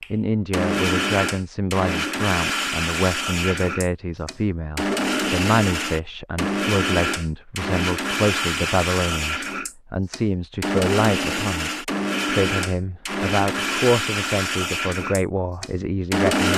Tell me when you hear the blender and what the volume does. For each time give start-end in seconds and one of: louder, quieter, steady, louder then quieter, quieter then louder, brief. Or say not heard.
0.0-16.5 steady.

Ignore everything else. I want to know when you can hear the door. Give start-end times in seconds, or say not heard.
not heard.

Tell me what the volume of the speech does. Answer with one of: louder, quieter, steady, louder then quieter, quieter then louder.
steady.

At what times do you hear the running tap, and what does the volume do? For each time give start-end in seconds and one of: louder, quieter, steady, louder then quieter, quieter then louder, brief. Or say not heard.
not heard.